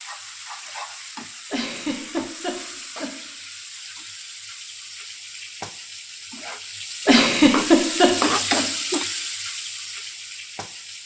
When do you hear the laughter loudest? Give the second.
8 s.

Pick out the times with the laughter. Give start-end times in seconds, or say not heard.
1.5-3.1, 7.0-8.7.